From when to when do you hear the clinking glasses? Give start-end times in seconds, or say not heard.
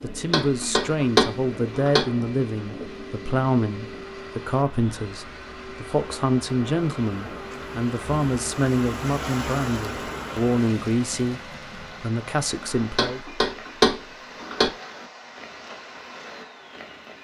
not heard.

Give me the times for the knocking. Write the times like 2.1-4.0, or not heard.
0.1-2.0, 12.8-14.7.